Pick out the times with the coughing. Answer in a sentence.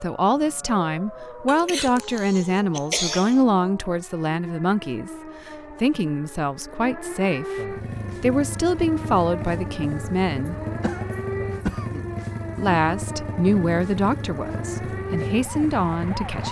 You can hear the coughing from 1.4 to 3.4 s and from 10.4 to 12.1 s.